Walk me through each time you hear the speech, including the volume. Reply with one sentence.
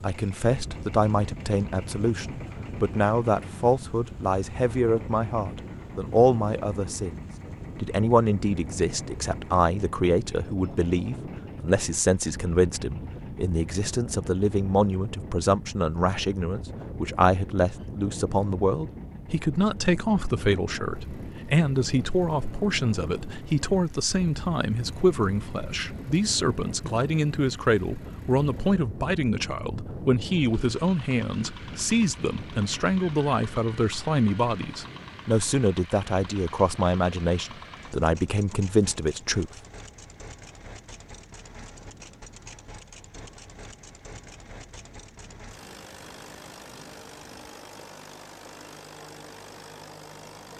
You can hear the speech from 0.0 to 39.5 s, at a steady volume.